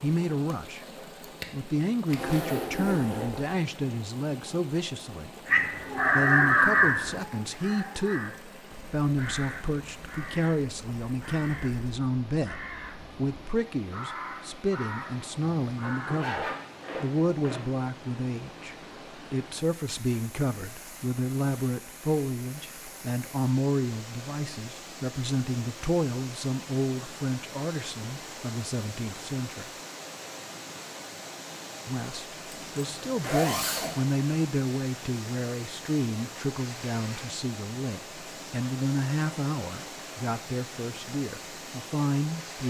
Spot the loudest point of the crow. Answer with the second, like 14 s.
7 s.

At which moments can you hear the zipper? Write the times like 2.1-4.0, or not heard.
2.0-3.5, 15.9-17.6, 32.5-34.0.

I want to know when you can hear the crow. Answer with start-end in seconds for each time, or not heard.
5.5-16.2.